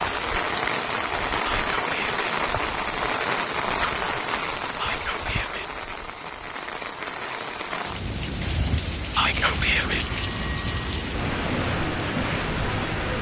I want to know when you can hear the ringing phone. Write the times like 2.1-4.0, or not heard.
9.9-11.1.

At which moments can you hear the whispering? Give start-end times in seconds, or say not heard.
1.4-2.2, 4.8-5.7, 9.2-10.1.